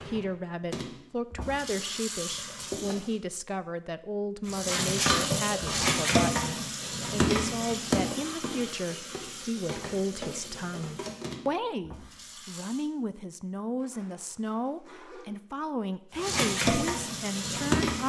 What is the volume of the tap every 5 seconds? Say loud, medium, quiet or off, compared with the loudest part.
medium, loud, quiet, loud.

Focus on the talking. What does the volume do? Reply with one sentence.
The volume of the talking stays about the same.